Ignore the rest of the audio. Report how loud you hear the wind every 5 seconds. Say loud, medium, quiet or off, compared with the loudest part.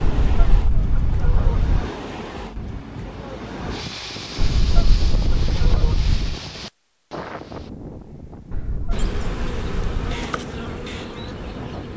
loud, loud, medium.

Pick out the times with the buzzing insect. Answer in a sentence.
You can hear the buzzing insect from 8.9 to 11.9 s.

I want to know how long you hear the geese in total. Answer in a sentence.
You can hear the geese for 5 seconds altogether.